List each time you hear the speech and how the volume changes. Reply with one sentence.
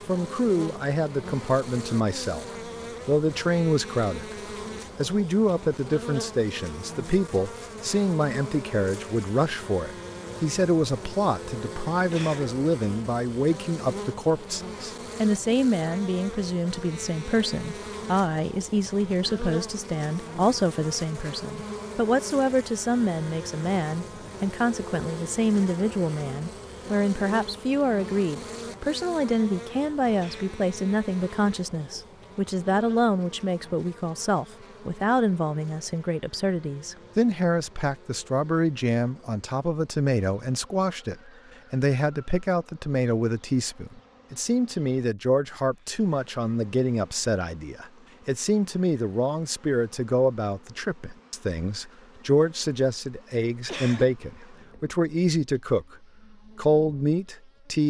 You can hear the speech briefly from 0.1 to 2.5 s; briefly from 3.0 to 4.3 s; and from 5.0 to 57.8 s, at a steady volume.